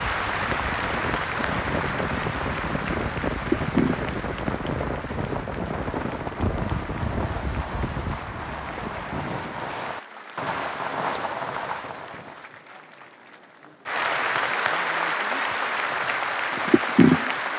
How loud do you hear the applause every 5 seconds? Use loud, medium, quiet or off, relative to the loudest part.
medium, quiet, medium, loud.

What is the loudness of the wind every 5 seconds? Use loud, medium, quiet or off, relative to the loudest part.
loud, loud, off, off.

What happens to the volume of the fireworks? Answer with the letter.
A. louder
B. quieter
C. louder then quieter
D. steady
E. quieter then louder
A.